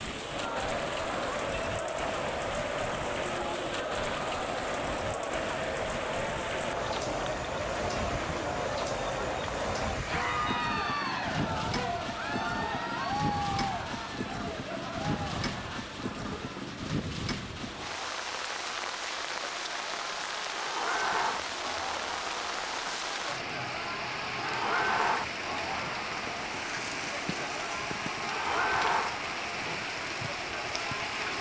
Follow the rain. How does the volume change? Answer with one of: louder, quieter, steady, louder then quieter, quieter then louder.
steady.